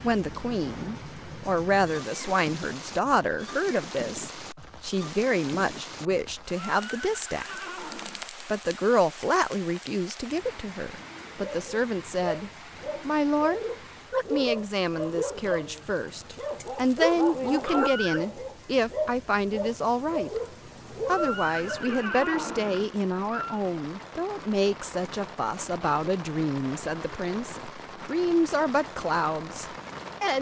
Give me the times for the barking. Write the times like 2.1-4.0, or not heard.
11.4-22.0.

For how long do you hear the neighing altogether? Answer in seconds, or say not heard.
5 s.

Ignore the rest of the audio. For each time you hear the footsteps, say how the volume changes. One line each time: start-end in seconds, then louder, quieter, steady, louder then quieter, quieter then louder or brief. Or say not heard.
not heard.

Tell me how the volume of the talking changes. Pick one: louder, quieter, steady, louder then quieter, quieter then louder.
steady.